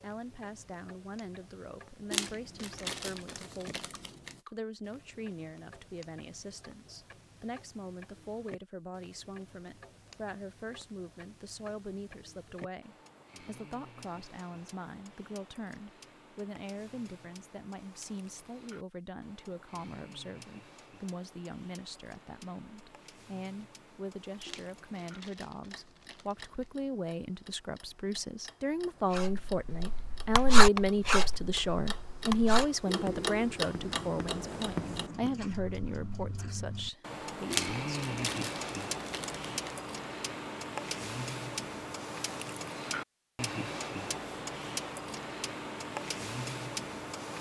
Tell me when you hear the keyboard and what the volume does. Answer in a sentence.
The keyboard can't be heard in this clip.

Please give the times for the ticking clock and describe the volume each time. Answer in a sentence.
The ticking clock can be heard from 0.0 to 47.3 s, getting louder.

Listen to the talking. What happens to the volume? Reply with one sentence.
The volume of the talking goes up.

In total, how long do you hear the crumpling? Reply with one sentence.
The crumpling can be heard for 7 seconds in total.